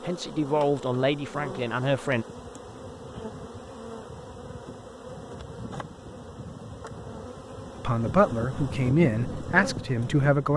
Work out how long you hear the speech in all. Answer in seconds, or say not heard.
5 s.